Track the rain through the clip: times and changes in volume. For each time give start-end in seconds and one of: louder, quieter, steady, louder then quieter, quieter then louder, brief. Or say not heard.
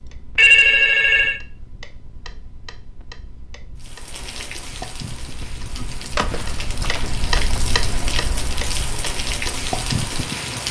3.8-10.6 louder.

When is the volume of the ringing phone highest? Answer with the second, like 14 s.
1 s.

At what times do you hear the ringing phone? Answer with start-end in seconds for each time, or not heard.
0.3-1.4, 6.2-7.6.